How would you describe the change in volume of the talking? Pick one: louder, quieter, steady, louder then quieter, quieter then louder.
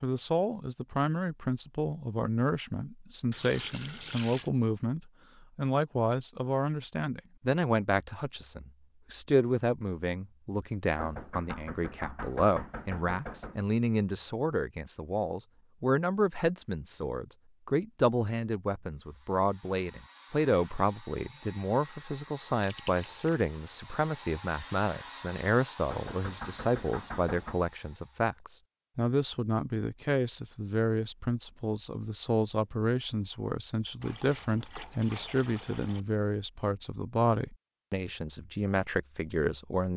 steady.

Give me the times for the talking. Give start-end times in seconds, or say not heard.
0.0-39.9.